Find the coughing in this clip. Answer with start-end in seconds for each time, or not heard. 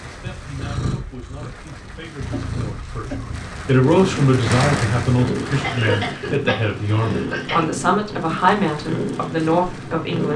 2.3-3.5, 5.6-7.7.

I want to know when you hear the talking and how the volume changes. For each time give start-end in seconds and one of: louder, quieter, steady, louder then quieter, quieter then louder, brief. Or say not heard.
0.0-10.3 louder.